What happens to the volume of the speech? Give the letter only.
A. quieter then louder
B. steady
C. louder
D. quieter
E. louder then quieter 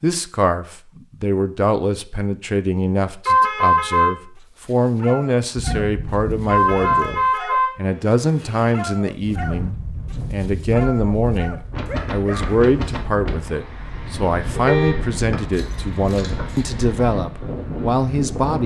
B.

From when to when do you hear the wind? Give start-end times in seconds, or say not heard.
9.2-18.6.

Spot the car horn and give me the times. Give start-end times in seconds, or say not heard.
3.2-4.2, 6.5-8.7, 14.6-15.2.